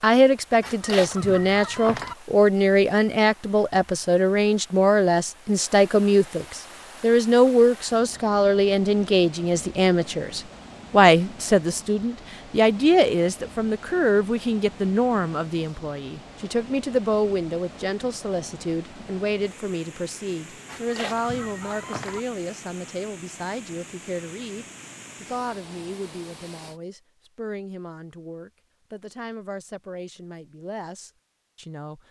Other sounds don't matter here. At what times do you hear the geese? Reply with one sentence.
The geese can be heard from 0.6 to 2.1 s and from 20.6 to 22.2 s.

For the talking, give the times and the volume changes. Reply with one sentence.
The talking can be heard from 0.0 to 32.0 s, getting quieter.